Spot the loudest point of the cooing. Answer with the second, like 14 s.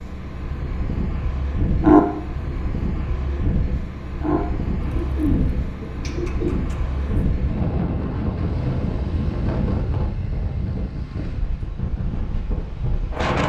2 s.